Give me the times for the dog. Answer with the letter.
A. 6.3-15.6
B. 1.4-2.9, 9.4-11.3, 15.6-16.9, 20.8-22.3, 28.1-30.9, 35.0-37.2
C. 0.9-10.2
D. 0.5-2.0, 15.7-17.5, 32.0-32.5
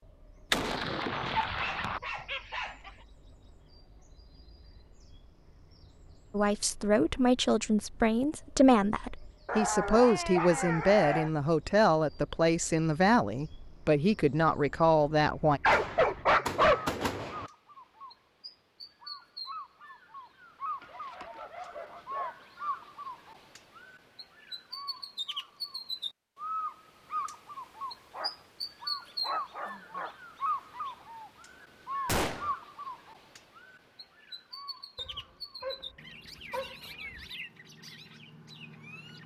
B.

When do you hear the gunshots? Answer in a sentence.
You can hear the gunshots from 0.5 to 2.0 s, from 15.7 to 17.5 s and from 32.0 to 32.5 s.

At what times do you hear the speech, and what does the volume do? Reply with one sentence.
You can hear the speech from 6.3 to 15.6 s, at a steady volume.